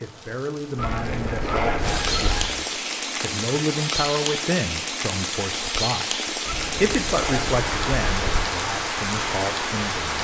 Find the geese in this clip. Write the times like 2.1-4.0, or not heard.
0.8-2.5, 6.5-8.4.